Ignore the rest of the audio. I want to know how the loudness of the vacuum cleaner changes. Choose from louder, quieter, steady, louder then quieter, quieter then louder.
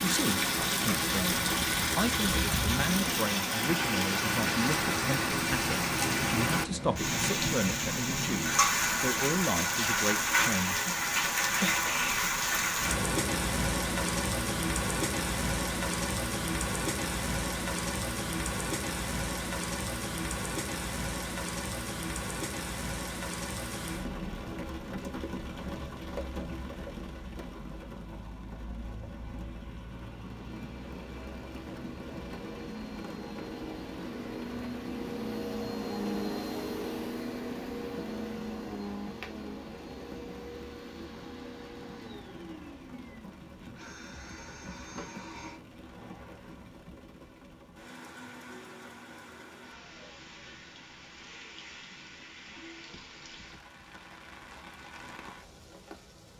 louder then quieter.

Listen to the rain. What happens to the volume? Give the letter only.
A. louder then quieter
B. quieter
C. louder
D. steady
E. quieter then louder
B.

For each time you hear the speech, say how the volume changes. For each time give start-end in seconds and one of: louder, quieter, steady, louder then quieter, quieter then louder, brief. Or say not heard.
0.0-10.8 steady.